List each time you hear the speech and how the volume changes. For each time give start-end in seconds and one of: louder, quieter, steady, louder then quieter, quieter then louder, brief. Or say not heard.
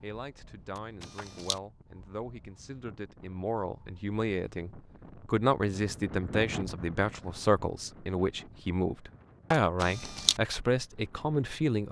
0.0-11.8 louder.